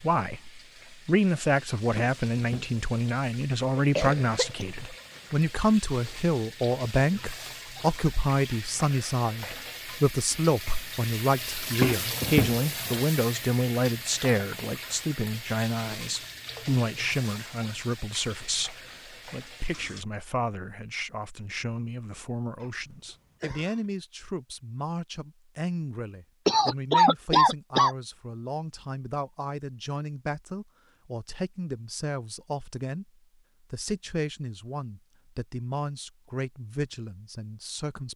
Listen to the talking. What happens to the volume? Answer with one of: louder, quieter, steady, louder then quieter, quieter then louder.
quieter.